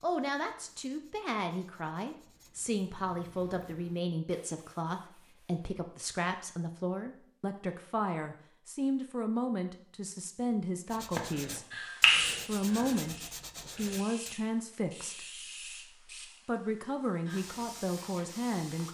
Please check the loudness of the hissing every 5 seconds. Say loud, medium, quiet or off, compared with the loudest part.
off, off, loud, quiet.